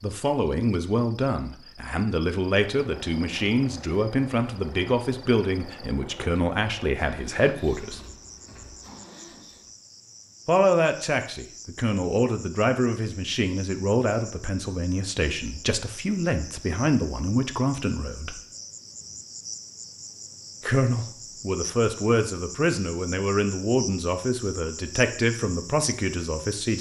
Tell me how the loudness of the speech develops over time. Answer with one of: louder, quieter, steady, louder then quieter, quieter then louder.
steady.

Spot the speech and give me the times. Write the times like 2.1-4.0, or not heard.
0.0-8.0, 10.4-18.4, 20.6-26.7.